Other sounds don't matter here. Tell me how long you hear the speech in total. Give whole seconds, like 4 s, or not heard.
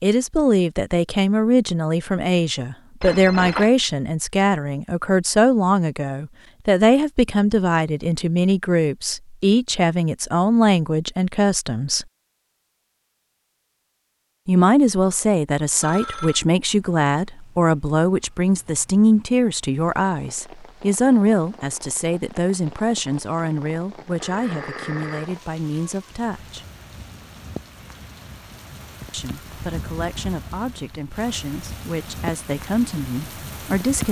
29 s.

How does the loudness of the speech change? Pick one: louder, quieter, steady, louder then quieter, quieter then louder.
quieter.